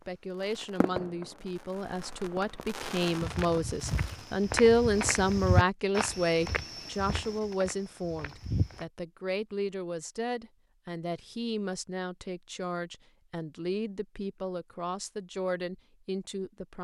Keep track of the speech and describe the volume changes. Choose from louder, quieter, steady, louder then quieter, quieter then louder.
louder then quieter.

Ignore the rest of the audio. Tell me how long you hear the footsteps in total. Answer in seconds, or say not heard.
6 s.